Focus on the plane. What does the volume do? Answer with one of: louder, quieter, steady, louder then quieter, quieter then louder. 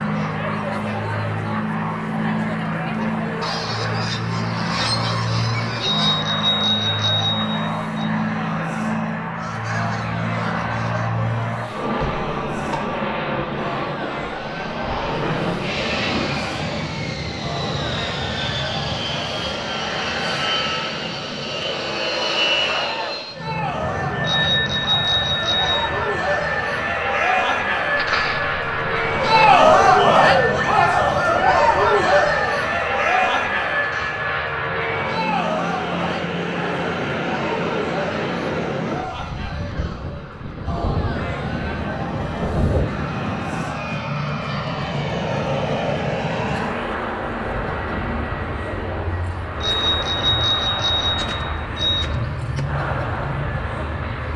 steady.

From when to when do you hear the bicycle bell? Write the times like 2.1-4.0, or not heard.
5.8-8.1, 24.2-25.9, 49.6-52.1.